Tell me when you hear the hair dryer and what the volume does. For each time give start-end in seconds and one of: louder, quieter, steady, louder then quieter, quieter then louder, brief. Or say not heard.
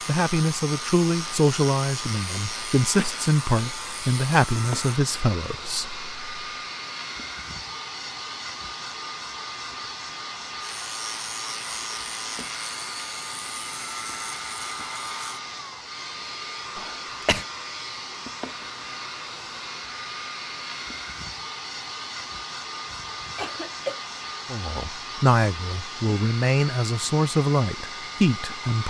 0.0-28.8 steady.